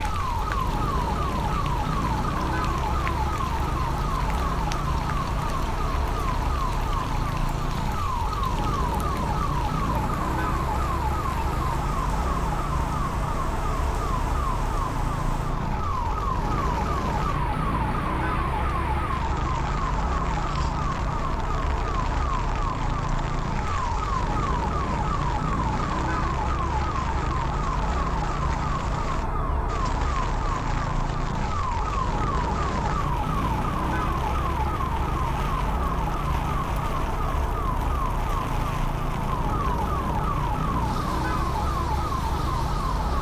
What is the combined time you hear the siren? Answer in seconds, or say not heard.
43 s.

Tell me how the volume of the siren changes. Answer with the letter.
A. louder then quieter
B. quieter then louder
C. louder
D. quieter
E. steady
E.